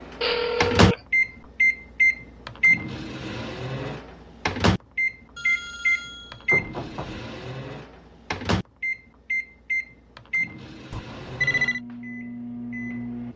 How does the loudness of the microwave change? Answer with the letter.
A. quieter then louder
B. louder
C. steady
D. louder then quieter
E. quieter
E.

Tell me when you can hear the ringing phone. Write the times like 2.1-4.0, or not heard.
0.2-1.0, 5.3-7.2, 10.9-11.8.